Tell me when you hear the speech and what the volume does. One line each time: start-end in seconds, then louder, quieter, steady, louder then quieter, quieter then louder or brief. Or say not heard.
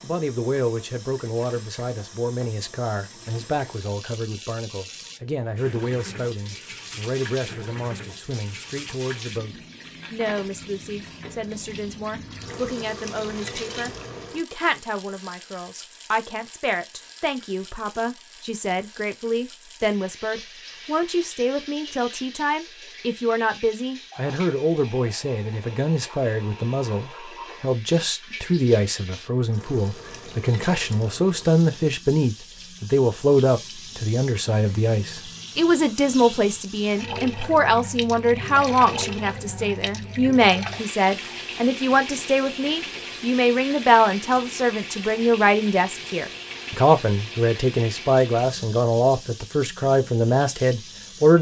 0.0-51.3 louder.